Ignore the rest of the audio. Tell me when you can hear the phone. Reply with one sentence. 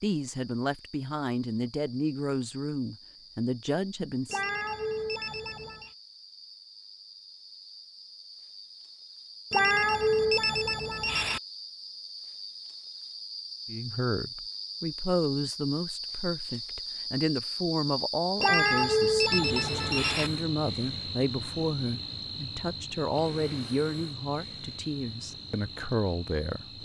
You can hear the phone from 4.2 to 5.9 s, from 9.5 to 11.4 s and from 18.4 to 20.3 s.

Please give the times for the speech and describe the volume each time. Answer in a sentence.
You can hear the speech from 0.0 to 4.4 s, at a steady volume; and from 13.7 to 26.8 s, at a steady volume.